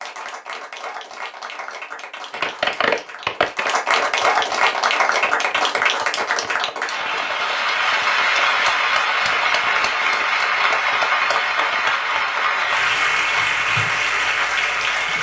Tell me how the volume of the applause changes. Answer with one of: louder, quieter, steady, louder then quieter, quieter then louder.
louder.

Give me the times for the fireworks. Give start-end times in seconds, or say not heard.
2.3-11.8.